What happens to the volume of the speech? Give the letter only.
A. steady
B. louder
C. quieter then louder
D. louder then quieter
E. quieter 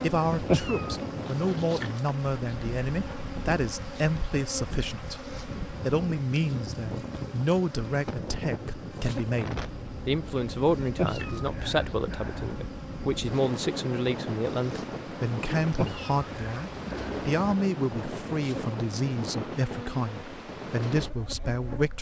A.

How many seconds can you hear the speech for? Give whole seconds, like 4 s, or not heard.
22 s.